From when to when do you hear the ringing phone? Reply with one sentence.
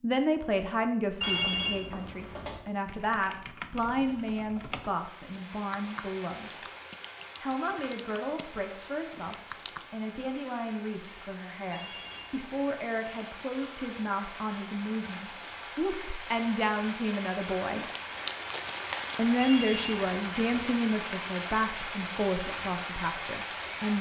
The ringing phone can be heard from 1.2 to 2.6 s, from 11.7 to 12.8 s and from 19.4 to 20.6 s.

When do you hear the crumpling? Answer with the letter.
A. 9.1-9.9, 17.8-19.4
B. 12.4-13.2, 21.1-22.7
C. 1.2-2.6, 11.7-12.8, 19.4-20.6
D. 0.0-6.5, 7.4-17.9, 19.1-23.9
A.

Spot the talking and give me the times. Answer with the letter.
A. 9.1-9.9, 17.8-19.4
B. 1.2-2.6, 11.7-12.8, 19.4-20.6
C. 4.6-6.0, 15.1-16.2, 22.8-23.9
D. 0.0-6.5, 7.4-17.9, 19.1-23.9
D.